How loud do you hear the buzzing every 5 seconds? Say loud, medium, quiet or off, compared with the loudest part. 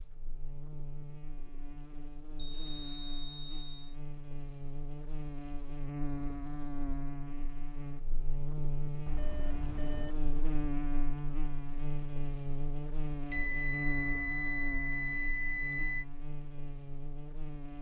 medium, loud, loud, medium.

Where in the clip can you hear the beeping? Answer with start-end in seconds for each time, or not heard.
2.4-3.9, 9.1-10.2, 13.3-16.1.